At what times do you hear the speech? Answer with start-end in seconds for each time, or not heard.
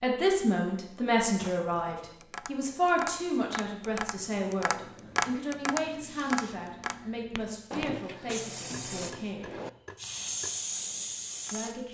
0.0-9.5, 11.5-11.9.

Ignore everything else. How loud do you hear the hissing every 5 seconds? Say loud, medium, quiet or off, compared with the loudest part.
off, medium, loud.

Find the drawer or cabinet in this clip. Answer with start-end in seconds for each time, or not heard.
1.4-2.2, 7.7-9.7.